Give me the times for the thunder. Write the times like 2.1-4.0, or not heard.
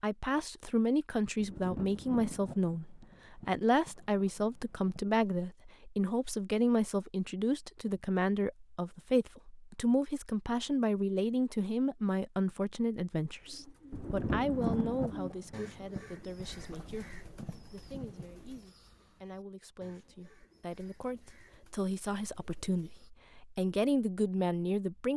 1.4-5.0, 13.9-18.6.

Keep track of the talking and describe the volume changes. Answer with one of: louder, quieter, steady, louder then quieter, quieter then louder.
quieter then louder.